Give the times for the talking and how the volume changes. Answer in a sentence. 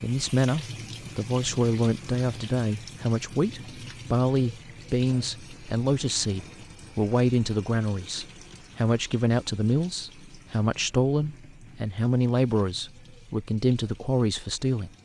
You can hear the talking from 0.0 to 14.9 s, at a steady volume.